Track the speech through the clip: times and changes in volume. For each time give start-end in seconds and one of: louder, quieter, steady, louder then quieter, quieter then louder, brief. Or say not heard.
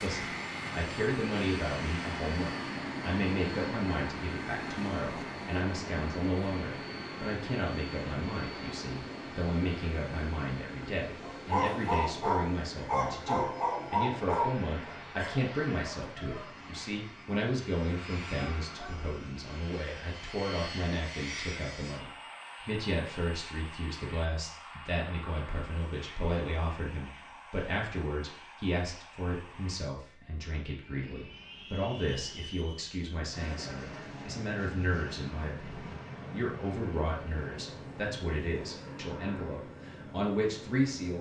0.0-41.1 steady.